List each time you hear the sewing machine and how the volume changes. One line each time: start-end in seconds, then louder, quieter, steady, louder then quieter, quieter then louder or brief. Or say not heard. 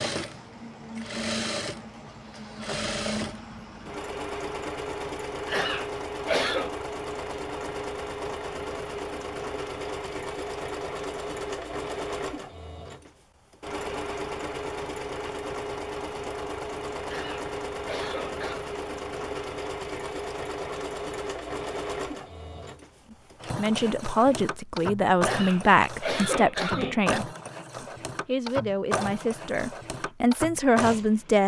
0.0-31.4 steady.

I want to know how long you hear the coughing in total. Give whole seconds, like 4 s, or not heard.
5 s.